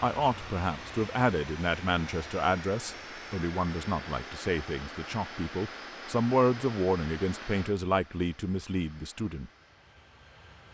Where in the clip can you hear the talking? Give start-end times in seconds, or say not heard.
0.0-9.5.